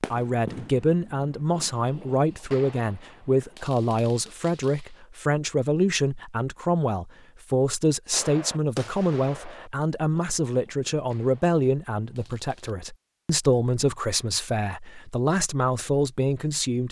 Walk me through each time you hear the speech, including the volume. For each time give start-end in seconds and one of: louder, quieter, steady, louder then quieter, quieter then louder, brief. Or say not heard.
0.0-16.8 steady.